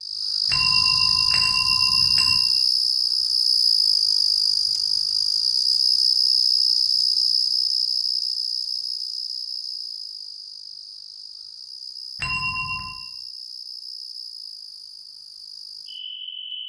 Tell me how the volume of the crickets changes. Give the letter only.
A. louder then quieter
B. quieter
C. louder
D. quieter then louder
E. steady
B.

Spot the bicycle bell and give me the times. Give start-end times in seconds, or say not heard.
0.5-2.4, 12.2-12.9.